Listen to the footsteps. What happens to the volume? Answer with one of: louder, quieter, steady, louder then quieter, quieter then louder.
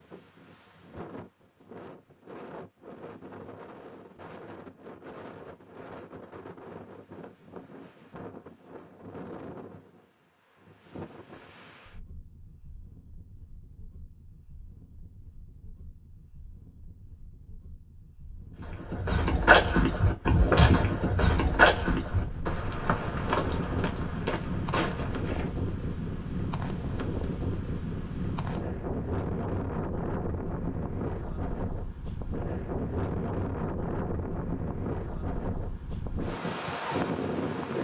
quieter.